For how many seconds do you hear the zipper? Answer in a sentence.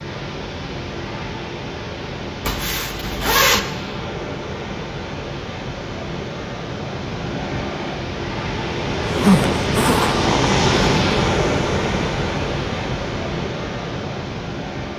The zipper can be heard for 3 seconds in total.